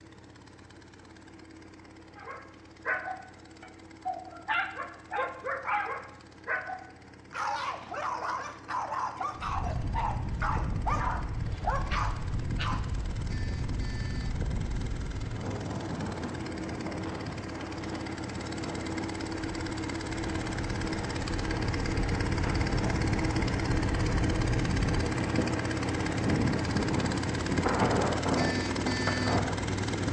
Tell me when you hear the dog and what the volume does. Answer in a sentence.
The dog can be heard from 2.1 to 12.8 s, at a steady volume.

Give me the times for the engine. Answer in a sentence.
You can hear the engine from 0.0 to 30.0 s.